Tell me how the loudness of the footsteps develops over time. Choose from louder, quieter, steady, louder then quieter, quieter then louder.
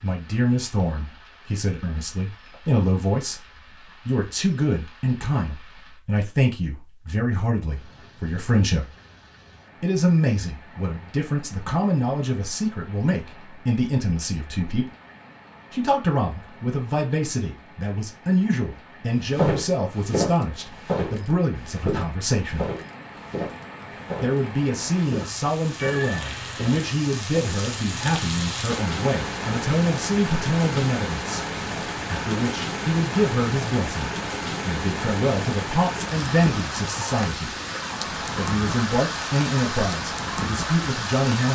quieter.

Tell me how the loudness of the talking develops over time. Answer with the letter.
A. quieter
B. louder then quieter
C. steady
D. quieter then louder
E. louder
C.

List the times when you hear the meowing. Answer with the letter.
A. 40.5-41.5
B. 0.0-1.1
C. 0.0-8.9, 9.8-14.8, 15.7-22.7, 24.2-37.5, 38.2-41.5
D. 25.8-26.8
D.